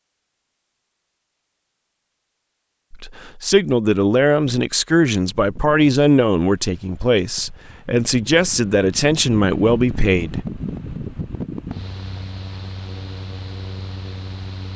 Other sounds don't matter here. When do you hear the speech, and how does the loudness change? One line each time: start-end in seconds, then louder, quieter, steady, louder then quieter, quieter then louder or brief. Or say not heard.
2.9-10.4 steady.